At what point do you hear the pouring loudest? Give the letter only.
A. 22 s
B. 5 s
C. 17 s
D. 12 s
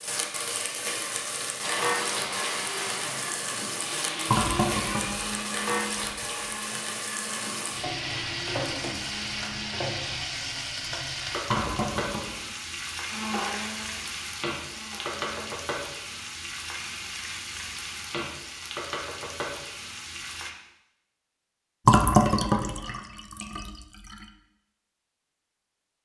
A.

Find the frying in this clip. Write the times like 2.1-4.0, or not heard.
0.0-20.5.